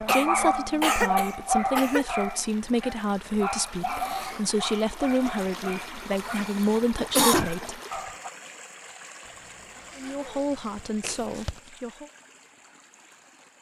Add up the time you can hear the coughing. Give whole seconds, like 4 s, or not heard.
4 s.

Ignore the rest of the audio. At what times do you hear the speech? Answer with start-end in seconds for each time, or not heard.
0.0-7.8, 9.9-12.1.